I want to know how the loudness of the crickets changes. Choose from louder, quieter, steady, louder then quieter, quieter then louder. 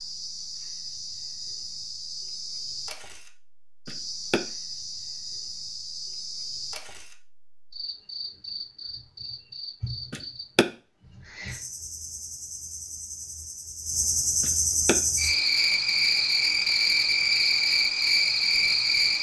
louder.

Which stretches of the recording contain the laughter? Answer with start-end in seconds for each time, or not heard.
3.9-4.4, 10.1-10.7, 14.4-14.9.